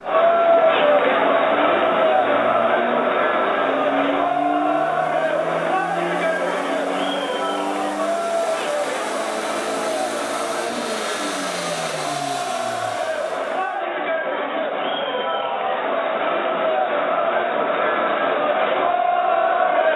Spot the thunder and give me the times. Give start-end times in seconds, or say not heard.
not heard.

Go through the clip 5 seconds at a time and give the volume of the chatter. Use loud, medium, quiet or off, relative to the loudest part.
loud, medium, medium, loud.